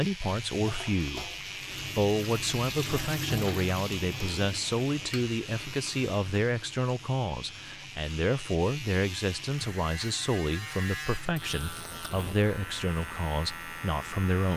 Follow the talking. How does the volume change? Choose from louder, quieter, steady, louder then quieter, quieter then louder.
steady.